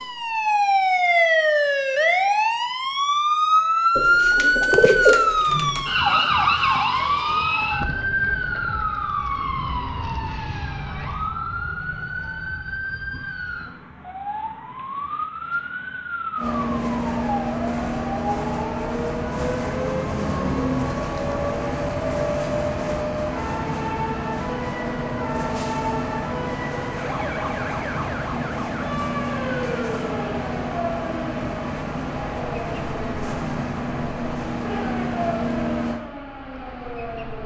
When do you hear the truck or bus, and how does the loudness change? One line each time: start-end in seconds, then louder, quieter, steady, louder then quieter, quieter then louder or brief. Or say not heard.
16.4-36.0 steady.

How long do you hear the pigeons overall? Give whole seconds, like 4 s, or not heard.
2 s.